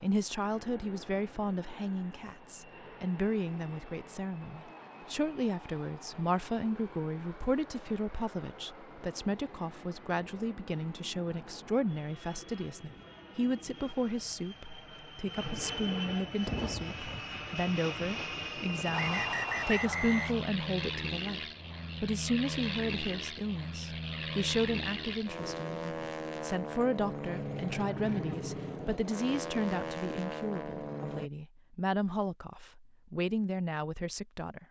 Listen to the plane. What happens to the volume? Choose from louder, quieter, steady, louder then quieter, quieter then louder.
louder.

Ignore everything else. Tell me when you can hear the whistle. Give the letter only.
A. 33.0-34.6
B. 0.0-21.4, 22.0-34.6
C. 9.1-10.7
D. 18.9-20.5
D.